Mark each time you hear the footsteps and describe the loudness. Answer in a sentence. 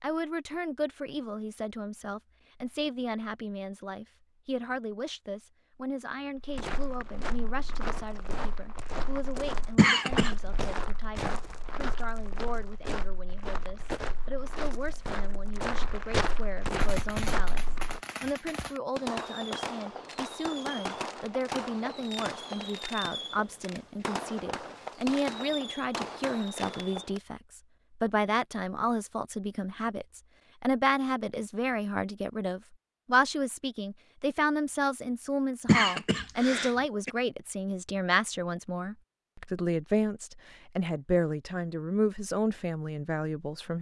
You can hear the footsteps from 6.3 to 18.0 s, getting louder.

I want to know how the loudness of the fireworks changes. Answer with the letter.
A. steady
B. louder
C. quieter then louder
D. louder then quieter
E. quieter
A.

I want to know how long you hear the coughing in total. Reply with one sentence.
You can hear the coughing for 2 seconds altogether.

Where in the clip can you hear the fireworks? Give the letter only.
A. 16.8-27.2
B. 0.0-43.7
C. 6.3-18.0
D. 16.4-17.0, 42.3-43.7
A.